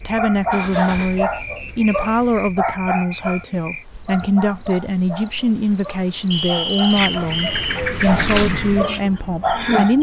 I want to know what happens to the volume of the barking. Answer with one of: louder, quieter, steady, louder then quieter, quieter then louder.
quieter then louder.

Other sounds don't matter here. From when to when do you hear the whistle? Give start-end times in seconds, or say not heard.
1.1-3.2, 6.3-7.8.